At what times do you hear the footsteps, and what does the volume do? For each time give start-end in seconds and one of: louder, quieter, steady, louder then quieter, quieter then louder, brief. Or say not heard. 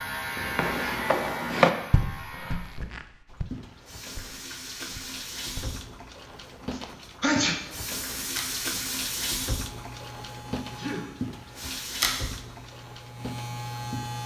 0.3-5.8 quieter.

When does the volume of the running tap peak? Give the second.
9 s.